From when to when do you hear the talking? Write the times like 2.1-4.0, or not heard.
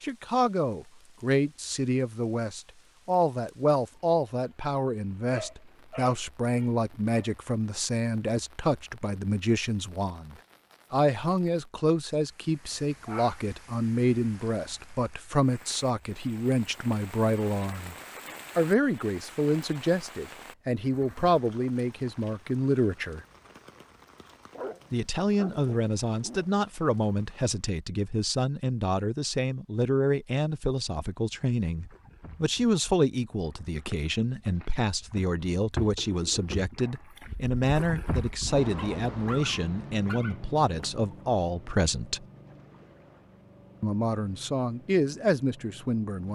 0.0-17.9, 18.6-23.2, 24.9-42.2, 43.8-46.3.